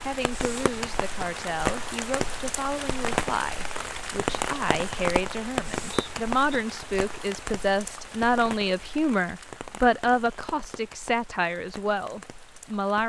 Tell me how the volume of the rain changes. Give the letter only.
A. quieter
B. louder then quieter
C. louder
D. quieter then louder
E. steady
A.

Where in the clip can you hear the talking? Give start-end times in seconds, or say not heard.
0.0-13.0.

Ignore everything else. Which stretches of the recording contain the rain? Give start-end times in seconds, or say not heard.
0.0-13.0.